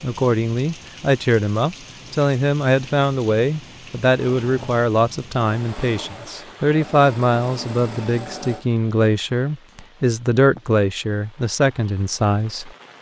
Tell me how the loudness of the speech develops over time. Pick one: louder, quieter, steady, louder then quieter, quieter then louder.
steady.